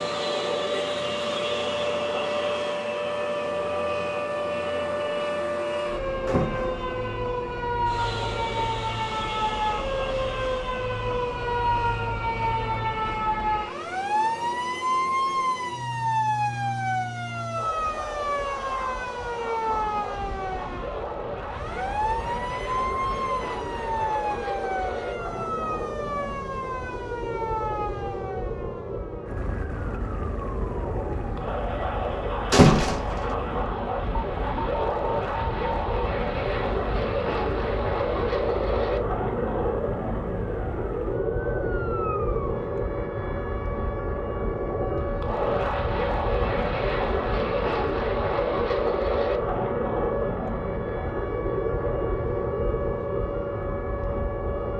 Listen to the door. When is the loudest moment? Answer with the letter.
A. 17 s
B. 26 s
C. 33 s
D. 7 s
C.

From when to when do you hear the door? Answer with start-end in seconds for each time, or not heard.
6.2-6.8, 32.5-33.3.